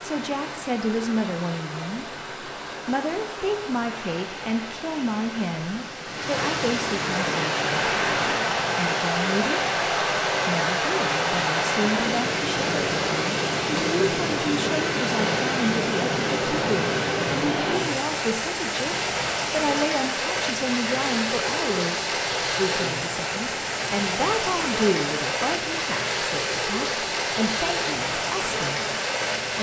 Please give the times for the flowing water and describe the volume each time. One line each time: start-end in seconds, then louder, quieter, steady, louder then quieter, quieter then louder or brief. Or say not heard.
0.0-29.5 louder.